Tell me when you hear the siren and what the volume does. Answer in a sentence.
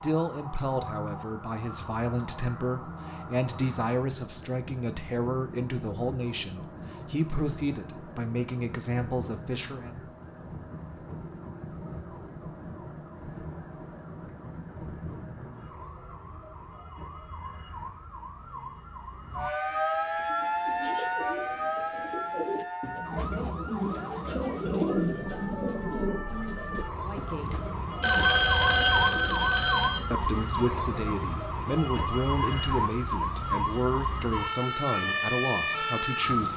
You can hear the siren from 0.0 to 36.5 s, getting louder.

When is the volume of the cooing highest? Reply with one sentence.
The loudest moment of the cooing is at 25 seconds.